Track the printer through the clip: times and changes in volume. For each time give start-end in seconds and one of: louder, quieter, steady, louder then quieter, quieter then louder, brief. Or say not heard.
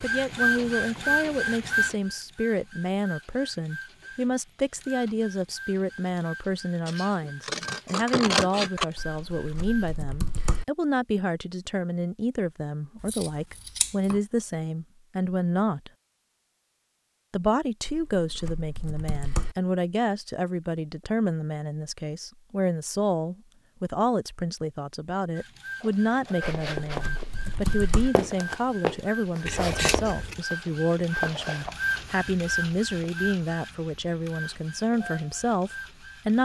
0.0-9.9 quieter
25.4-36.3 louder then quieter.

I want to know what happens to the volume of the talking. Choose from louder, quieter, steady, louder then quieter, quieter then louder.
steady.